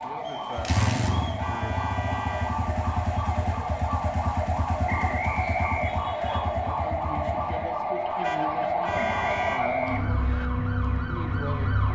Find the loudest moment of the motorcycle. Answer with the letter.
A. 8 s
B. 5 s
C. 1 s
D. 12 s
C.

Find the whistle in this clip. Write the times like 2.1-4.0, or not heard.
0.1-1.4, 4.8-6.4, 8.9-10.5.